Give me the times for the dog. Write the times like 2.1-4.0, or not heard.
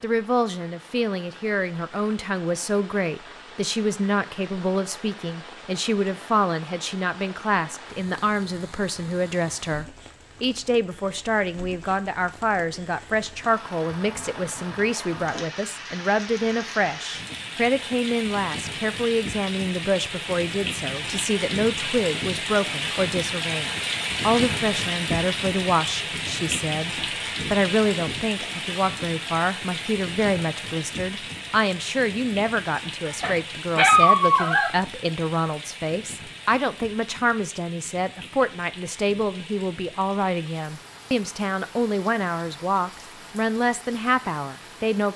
33.0-34.7.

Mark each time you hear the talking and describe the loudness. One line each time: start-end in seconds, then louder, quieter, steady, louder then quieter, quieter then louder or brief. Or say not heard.
0.0-45.1 steady.